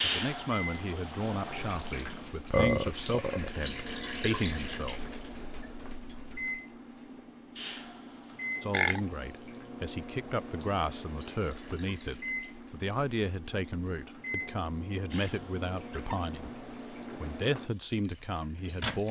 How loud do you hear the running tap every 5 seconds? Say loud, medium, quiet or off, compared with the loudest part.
loud, quiet, quiet, quiet.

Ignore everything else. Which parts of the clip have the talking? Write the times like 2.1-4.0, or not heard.
0.0-5.0, 8.6-19.0.